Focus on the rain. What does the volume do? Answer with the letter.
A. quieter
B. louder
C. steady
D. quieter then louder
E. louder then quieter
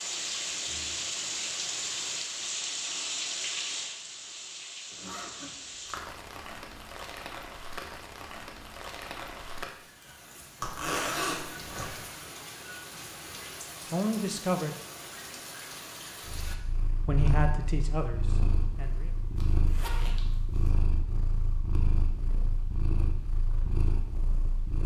A.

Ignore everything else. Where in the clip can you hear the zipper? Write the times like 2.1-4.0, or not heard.
4.9-6.0, 10.6-11.9, 19.4-20.7.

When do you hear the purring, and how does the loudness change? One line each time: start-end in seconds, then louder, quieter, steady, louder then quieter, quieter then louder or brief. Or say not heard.
16.2-24.8 steady.